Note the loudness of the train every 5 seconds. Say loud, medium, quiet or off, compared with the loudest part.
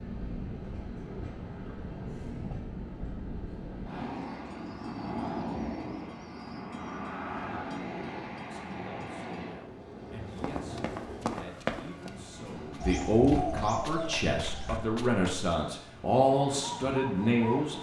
loud, loud, medium, medium.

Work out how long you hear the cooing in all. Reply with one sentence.
The cooing can be heard for 5 seconds in total.